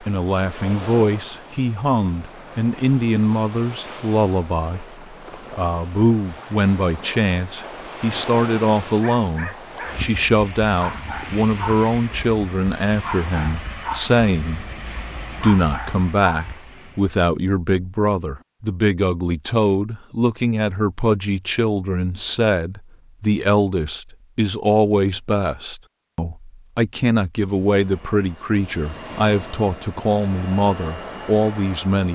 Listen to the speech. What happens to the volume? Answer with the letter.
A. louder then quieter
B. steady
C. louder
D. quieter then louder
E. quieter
B.